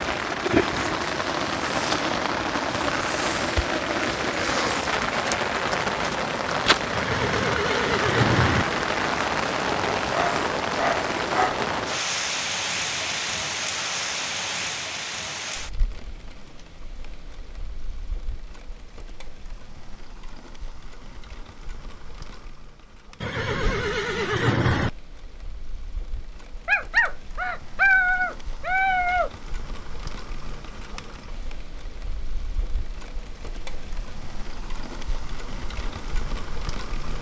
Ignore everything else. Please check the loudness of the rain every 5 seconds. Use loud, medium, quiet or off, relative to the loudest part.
loud, loud, loud, quiet, quiet, quiet, quiet, quiet.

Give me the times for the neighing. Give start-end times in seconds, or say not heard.
6.9-8.7, 23.2-24.9.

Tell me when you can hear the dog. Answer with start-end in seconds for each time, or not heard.
10.1-11.6, 26.6-29.3.